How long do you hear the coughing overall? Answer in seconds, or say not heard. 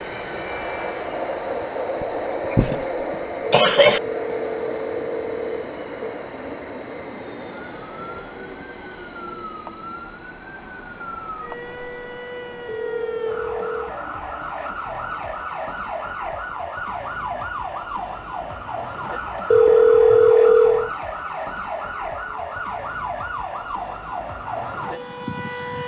2 s.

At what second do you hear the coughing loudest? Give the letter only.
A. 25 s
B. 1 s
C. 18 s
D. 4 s
D.